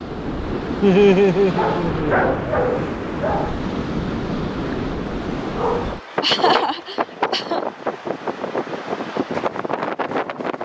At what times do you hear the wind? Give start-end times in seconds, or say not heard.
0.0-10.6.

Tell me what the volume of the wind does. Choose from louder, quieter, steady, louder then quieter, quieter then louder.
steady.